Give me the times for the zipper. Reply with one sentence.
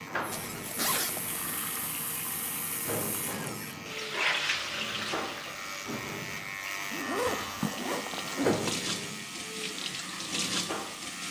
You can hear the zipper from 0.3 to 1.6 s and from 6.9 to 8.8 s.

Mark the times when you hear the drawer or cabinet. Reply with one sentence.
You can hear the drawer or cabinet from 3.2 to 3.9 s and from 7.2 to 7.7 s.